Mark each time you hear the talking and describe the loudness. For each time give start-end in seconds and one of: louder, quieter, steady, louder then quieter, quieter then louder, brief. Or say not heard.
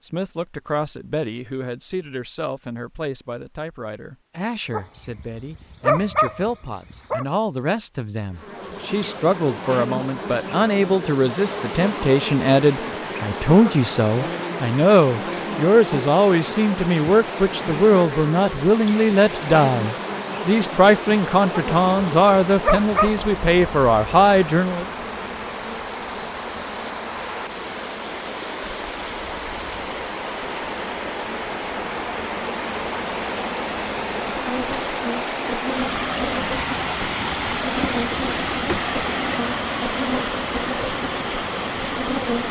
0.0-24.9 louder.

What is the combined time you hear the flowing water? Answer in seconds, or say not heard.
31 s.